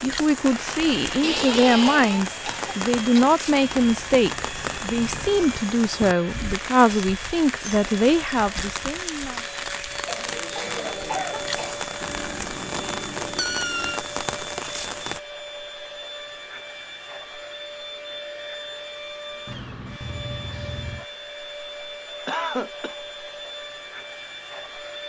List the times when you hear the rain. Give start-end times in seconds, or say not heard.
0.0-15.2.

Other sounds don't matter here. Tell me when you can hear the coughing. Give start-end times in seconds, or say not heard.
1.2-3.2, 10.1-11.8, 22.2-22.9.